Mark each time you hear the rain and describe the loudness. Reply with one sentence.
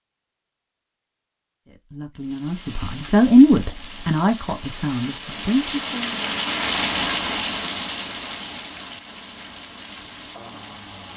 The rain can be heard from 2.1 to 11.1 s, getting louder then quieter.